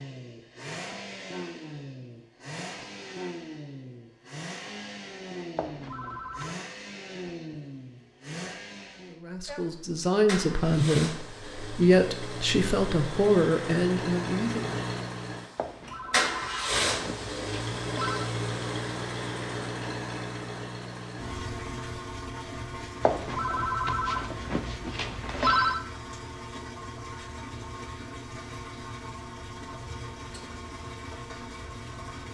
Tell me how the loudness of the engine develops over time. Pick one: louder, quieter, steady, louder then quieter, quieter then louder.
louder then quieter.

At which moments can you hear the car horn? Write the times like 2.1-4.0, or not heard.
not heard.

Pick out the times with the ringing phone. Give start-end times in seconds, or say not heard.
5.5-6.5, 15.6-18.3, 23.0-25.8.